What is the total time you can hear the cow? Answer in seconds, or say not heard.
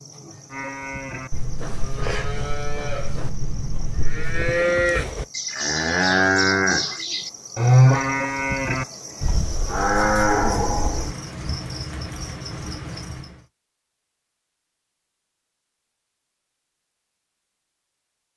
11 s.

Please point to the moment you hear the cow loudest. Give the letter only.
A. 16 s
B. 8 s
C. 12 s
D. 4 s
B.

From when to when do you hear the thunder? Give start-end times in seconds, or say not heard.
1.3-4.7.